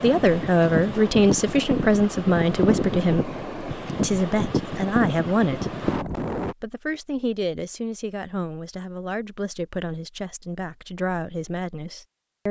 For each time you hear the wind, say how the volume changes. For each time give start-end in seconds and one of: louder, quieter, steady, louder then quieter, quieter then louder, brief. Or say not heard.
0.0-6.5 steady.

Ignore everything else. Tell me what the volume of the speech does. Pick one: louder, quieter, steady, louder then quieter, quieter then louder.
quieter.